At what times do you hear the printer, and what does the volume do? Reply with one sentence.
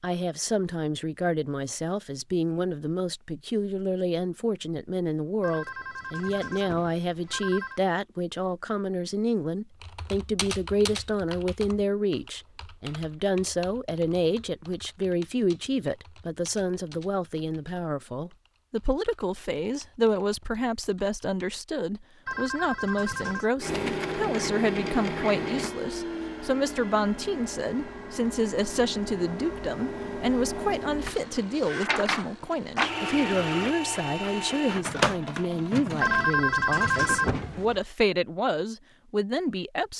The printer can be heard from 23.6 to 36.3 s, getting quieter then louder.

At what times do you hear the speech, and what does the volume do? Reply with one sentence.
The speech can be heard from 0.0 to 39.9 s, at a steady volume.